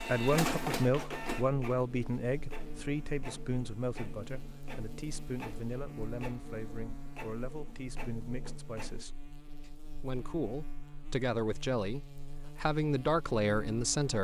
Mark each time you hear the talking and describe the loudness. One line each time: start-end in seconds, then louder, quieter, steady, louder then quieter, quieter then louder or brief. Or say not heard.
0.0-14.1 quieter then louder.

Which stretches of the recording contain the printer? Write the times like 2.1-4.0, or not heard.
0.0-9.1.